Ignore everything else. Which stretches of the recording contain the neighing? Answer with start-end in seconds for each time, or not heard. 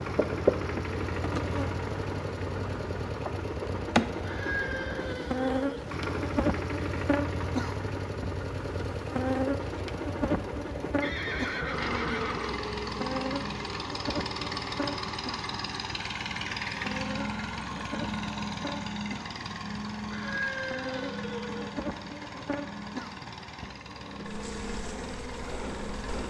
4.2-5.8, 11.0-12.6, 20.1-21.7.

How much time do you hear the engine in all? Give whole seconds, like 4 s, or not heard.
26 s.